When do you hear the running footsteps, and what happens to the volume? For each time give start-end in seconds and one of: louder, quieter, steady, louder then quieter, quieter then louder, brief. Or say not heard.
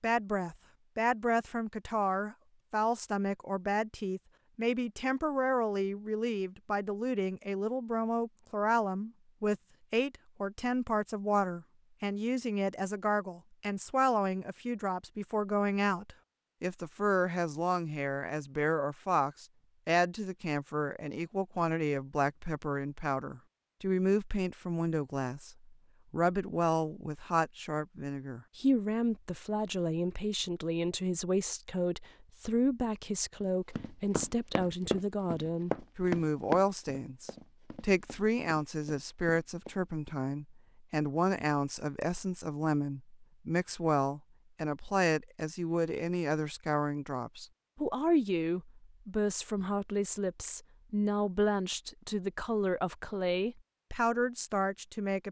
33.8-40.2 quieter.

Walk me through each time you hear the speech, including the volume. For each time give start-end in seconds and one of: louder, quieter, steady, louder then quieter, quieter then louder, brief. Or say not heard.
0.0-55.2 steady.